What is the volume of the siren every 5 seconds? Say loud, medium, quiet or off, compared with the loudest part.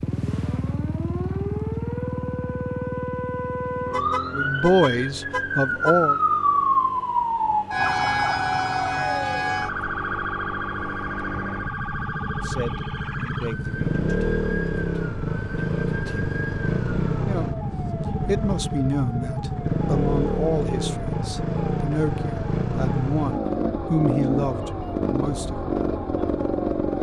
medium, loud, medium, quiet, quiet, quiet.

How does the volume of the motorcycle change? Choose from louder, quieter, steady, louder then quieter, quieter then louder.
quieter then louder.